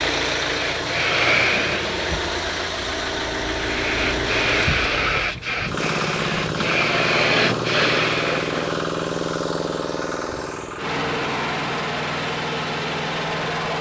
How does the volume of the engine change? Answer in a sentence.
The loudness of the engine stays about the same.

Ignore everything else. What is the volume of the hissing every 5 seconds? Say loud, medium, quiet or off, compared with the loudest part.
loud, loud, off.